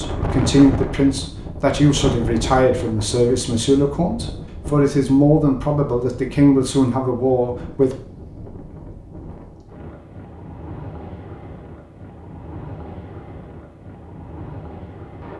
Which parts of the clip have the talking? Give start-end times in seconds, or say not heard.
0.0-8.0.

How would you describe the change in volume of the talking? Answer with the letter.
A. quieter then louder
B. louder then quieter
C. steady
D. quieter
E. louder
C.